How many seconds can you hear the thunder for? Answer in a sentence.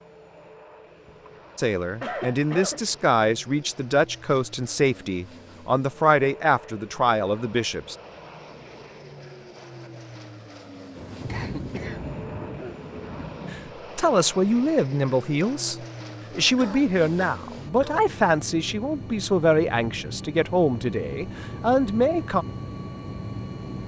The thunder can be heard for 3 seconds in total.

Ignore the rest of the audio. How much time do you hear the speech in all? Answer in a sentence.
The speech can be heard for 15 seconds in total.